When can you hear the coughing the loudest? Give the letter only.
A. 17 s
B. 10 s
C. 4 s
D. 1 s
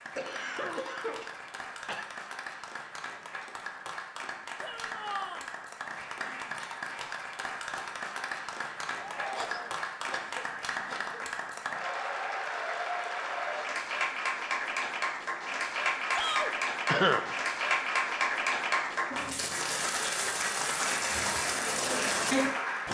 A.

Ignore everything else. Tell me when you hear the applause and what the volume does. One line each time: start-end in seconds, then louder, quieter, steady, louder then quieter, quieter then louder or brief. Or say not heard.
0.0-22.8 louder.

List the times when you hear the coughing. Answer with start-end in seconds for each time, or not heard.
0.1-2.0, 9.3-11.2, 16.9-17.4.